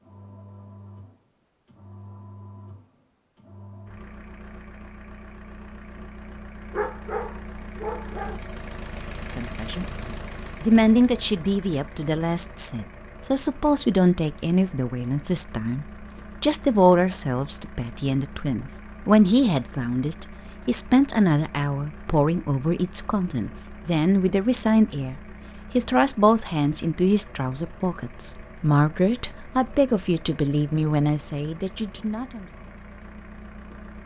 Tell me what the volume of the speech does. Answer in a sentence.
The loudness of the speech stays about the same.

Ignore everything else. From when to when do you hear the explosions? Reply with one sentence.
The explosions can't be heard in this clip.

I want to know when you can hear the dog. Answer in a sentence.
The dog can be heard from 6.7 to 8.4 s.